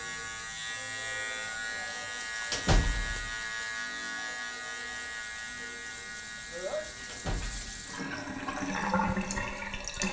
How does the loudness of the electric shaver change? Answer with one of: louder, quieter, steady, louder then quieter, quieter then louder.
quieter.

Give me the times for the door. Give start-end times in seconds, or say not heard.
2.5-3.3, 7.0-7.8.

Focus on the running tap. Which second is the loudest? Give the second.
9 s.